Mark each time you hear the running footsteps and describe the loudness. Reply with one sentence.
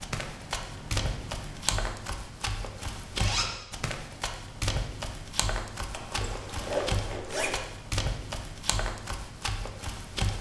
You can hear the running footsteps from 0.0 to 10.3 s, at a steady volume.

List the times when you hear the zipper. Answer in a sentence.
The zipper can be heard from 3.1 to 3.6 s and from 5.9 to 7.6 s.